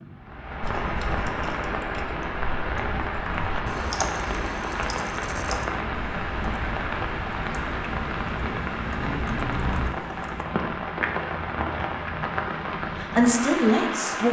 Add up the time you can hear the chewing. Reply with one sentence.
You can't hear the chewing here.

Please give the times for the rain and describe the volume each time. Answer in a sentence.
You can hear the rain from 0.0 to 14.2 s, at a steady volume.